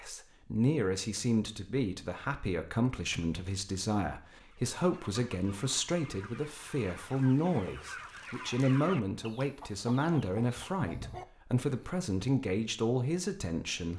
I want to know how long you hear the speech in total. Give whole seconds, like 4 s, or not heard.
14 s.